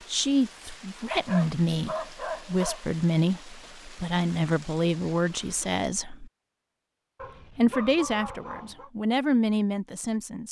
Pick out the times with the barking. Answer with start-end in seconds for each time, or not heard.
1.1-2.8, 7.2-8.9.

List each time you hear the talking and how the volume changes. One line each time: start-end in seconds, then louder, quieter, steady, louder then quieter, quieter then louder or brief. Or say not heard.
0.1-6.3 steady
7.5-10.4 brief.